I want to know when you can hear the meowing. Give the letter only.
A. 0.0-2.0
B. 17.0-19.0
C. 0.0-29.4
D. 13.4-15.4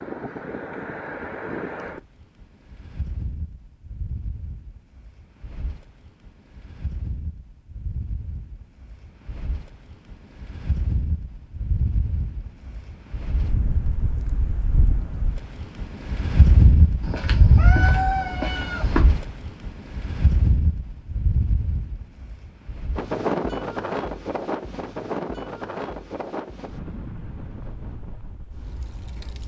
B.